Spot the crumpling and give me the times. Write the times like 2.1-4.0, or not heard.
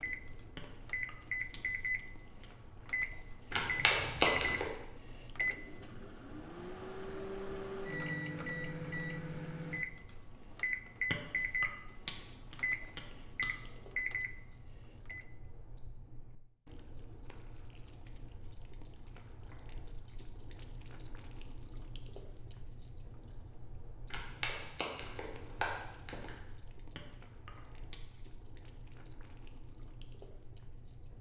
3.5-4.7, 24.1-26.3.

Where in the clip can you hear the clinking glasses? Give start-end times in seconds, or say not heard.
0.6-2.5, 11.1-13.5, 26.9-28.0.